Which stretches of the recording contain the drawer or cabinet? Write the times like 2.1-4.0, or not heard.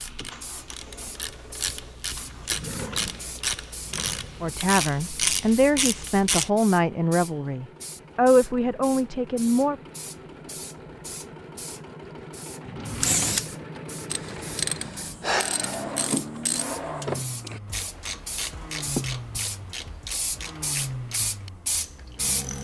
2.5-4.5, 12.6-13.4, 15.7-17.6.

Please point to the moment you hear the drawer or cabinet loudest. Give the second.
17 s.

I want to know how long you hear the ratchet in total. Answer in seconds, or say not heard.
16 s.